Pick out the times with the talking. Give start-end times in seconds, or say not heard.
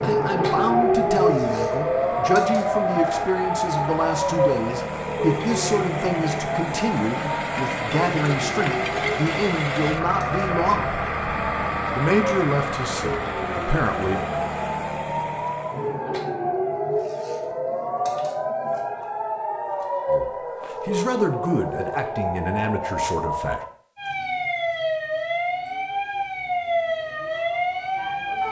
0.0-11.0, 11.9-14.2, 20.1-23.6.